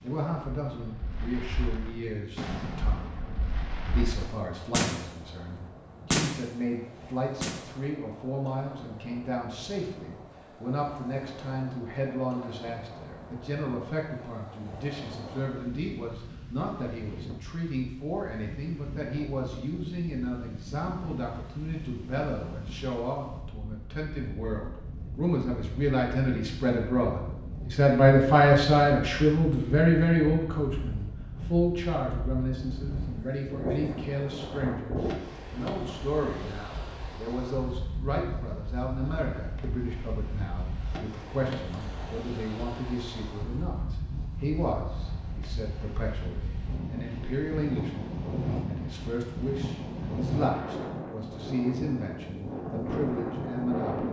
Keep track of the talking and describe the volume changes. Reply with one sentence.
The volume of the talking goes up, then down.